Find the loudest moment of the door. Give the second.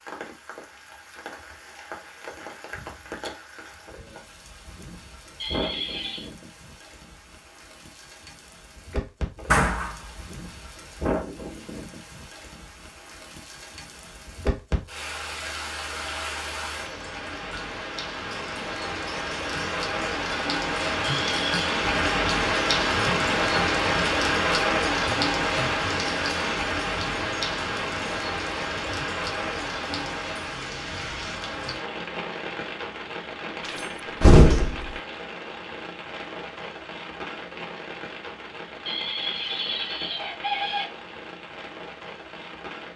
34 s.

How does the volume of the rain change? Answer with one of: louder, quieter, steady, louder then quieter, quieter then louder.
louder then quieter.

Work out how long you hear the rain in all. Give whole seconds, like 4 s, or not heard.
43 s.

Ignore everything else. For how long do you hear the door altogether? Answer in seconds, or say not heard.
2 s.